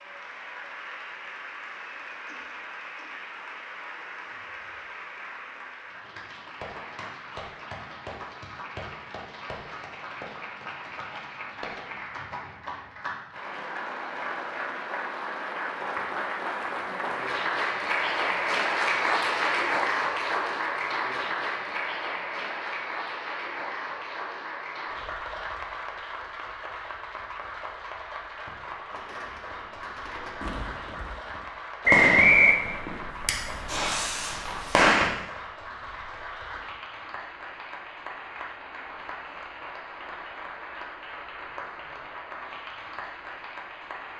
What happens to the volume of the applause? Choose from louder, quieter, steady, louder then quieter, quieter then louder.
louder then quieter.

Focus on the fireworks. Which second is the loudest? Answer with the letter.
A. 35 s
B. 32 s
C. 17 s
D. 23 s
A.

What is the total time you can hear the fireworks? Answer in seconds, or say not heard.
6 s.